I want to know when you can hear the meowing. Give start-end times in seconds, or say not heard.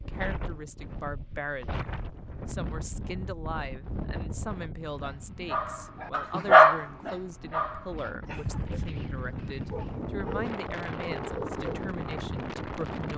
not heard.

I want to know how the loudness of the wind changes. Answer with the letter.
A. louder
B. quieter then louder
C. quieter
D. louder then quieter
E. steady
B.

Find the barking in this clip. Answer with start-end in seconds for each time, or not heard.
5.0-8.9, 9.7-11.8.